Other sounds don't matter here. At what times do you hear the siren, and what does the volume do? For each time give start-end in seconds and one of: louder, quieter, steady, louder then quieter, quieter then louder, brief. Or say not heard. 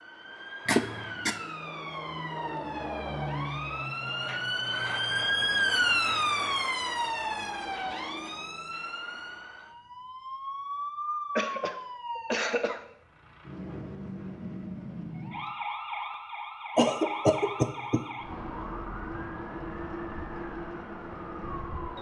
0.0-21.9 louder then quieter.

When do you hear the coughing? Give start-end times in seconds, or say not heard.
0.7-1.4, 11.3-12.8, 16.8-18.1.